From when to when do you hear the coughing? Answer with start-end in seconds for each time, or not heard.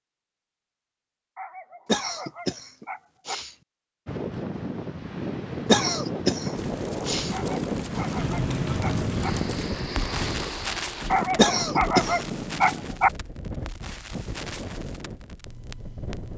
1.9-3.5, 5.7-7.3, 11.3-12.3.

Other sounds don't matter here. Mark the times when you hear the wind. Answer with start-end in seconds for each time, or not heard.
4.0-16.3.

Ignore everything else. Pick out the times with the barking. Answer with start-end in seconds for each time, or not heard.
1.4-3.4, 7.3-9.3, 11.1-13.1.